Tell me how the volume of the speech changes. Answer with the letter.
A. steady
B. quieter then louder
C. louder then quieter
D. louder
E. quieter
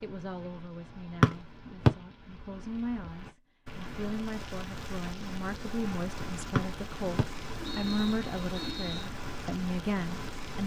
D.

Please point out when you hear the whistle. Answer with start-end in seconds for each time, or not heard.
1.2-1.9, 6.5-9.1.